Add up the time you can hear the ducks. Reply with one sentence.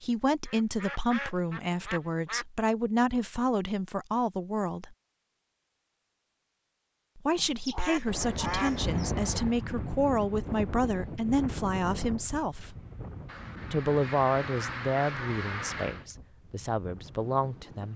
The ducks can be heard for 6 seconds in total.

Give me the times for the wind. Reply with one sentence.
The wind can be heard from 8.1 to 17.9 s.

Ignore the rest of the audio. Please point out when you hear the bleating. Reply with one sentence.
You can't hear the bleating here.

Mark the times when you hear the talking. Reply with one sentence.
You can hear the talking from 0.0 to 5.0 s, from 7.2 to 12.8 s and from 13.7 to 17.9 s.